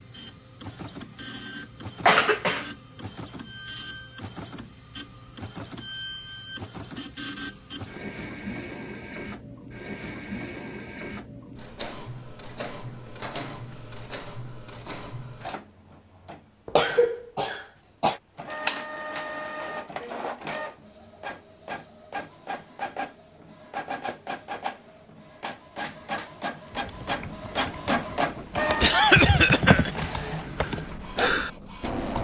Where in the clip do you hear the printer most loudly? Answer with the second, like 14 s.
28 s.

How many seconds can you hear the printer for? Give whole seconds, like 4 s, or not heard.
32 s.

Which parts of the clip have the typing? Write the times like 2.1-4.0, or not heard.
26.7-32.1.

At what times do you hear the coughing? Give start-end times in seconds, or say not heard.
2.0-2.6, 16.6-18.2, 28.8-30.1.